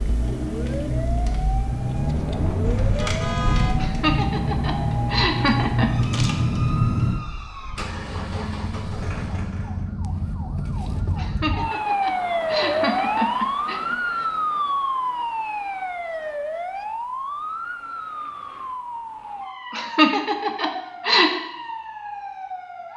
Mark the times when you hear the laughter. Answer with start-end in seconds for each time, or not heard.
3.8-5.9, 11.2-13.8, 19.7-21.3.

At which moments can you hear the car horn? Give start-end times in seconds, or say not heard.
2.6-3.9.